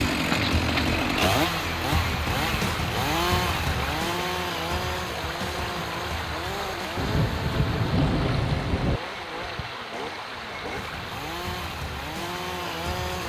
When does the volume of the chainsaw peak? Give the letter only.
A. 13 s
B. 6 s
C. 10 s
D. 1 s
D.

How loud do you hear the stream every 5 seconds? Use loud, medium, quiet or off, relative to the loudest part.
loud, loud, medium.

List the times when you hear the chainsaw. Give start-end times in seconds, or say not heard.
0.0-13.2.